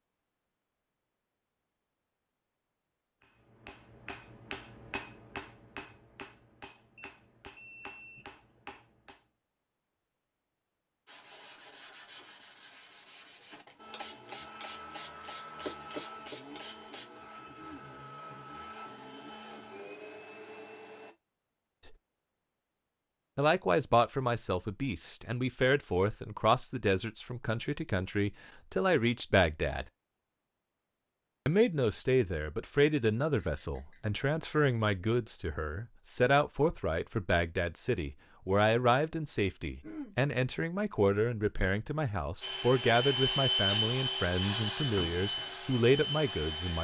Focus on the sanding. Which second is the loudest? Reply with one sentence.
The loudest moment of the sanding is at 16 seconds.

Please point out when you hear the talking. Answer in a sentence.
The talking can be heard from 23.4 to 29.9 s and from 31.4 to 46.7 s.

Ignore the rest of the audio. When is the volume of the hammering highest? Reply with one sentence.
The loudest moment of the hammering is at 5 seconds.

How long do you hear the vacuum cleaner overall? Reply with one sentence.
You can hear the vacuum cleaner for 12 seconds altogether.